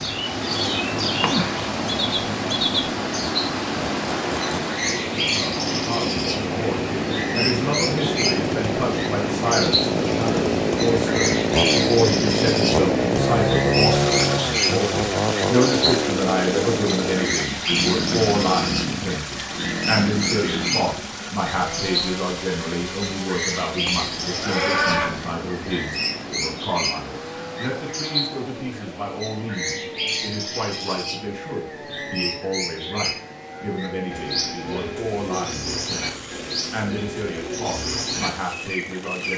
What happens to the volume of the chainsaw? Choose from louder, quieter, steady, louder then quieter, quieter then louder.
louder then quieter.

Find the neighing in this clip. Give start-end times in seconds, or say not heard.
24.2-25.1.